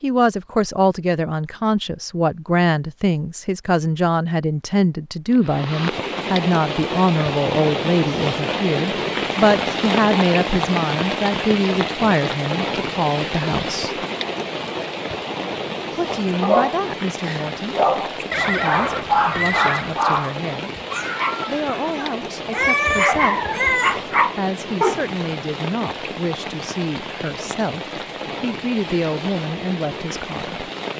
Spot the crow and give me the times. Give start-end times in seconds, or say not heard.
not heard.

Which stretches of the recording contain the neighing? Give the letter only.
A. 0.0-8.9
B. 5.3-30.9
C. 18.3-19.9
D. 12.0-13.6
C.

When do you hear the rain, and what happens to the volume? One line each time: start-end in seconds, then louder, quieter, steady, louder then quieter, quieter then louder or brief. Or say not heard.
5.3-30.9 quieter.